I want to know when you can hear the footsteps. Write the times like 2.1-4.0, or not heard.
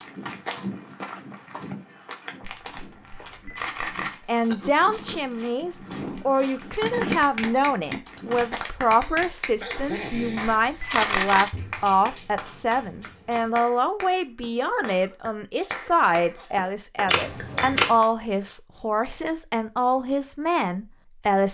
0.0-8.7.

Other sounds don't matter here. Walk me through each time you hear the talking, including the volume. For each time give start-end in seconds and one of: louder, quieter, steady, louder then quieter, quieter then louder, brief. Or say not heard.
4.2-21.4 steady.